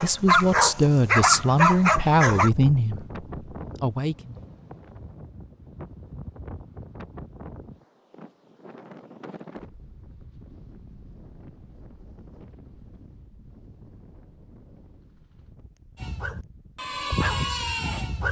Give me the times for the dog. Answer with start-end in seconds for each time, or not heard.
0.0-2.5, 15.9-18.2.